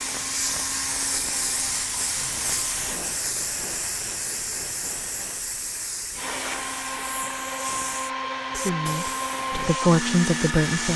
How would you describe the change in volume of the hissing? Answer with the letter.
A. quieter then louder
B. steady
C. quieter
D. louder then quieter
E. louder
C.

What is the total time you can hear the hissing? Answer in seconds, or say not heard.
11 s.